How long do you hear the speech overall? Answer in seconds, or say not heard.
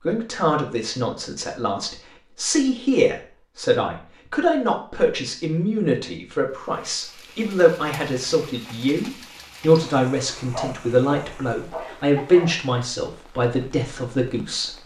15 s.